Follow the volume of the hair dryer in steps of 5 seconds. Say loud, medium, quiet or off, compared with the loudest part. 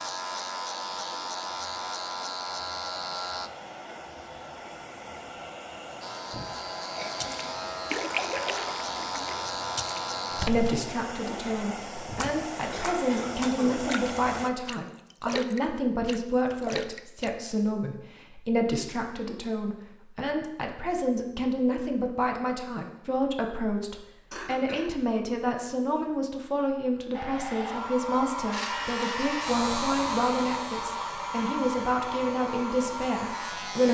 medium, medium, loud, off, off, loud, loud.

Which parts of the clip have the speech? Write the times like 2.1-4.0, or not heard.
10.4-33.8.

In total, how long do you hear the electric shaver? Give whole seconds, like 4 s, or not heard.
13 s.